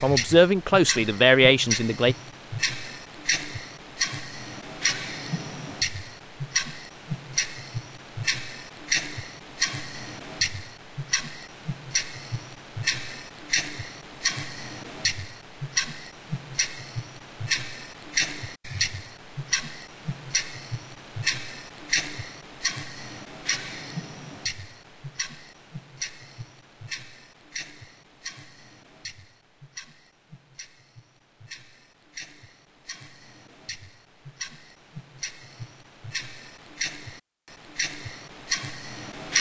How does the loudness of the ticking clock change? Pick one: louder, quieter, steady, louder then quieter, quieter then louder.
quieter.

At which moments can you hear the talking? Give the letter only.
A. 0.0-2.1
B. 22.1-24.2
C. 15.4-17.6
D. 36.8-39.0
A.